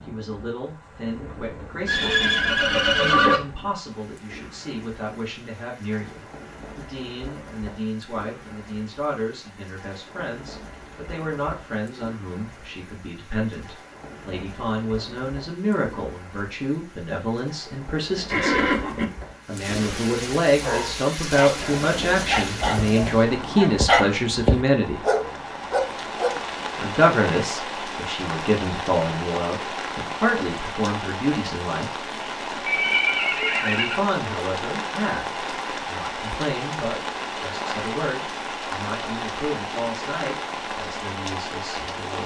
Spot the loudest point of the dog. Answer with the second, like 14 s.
24 s.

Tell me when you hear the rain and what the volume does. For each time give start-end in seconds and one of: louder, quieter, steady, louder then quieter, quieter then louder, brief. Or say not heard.
0.0-42.2 louder.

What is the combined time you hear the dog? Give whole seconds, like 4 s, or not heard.
6 s.